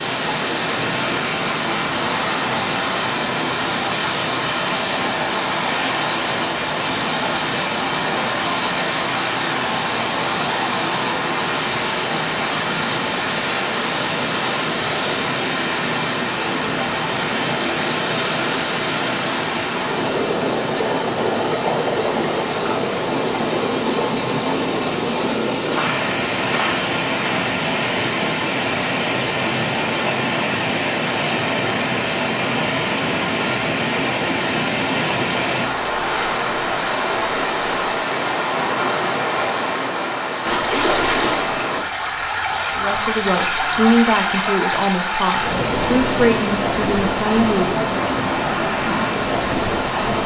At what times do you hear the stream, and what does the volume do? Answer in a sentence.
You can hear the stream from 0.0 to 50.2 s, at a steady volume.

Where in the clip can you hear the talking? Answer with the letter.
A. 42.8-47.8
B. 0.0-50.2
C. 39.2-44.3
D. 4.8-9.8
A.